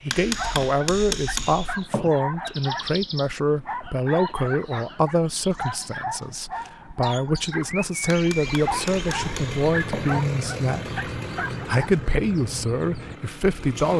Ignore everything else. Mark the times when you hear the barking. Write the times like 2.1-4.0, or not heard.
0.2-11.8.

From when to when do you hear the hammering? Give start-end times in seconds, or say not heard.
0.1-2.1, 8.1-10.1.